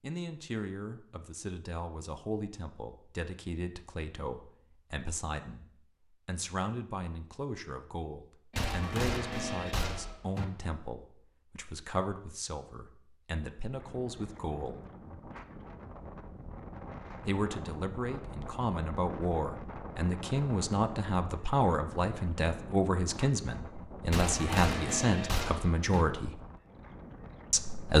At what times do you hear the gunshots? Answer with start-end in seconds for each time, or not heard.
8.5-10.4, 24.1-26.1.